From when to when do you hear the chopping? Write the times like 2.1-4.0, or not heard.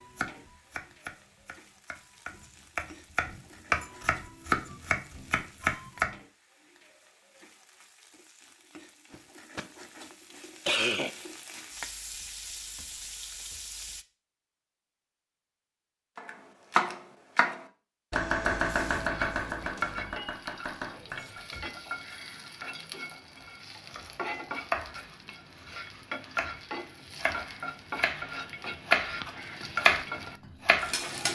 0.0-6.2, 16.1-21.7, 23.9-31.1.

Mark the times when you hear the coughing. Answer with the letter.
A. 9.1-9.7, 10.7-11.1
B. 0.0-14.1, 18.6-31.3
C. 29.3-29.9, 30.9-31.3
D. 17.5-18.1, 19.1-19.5
A.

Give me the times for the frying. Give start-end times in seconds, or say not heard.
0.0-14.1, 18.6-31.3.